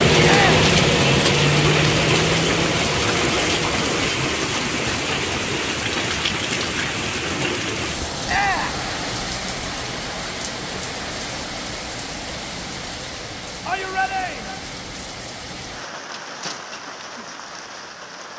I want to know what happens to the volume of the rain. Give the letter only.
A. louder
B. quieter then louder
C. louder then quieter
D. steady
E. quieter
E.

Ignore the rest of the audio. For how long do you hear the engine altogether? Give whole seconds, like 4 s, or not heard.
4 s.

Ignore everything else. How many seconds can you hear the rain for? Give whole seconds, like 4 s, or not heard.
18 s.